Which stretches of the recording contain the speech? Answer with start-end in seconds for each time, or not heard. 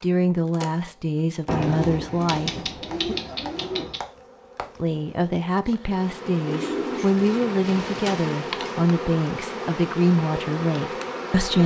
0.0-3.1, 4.8-11.6.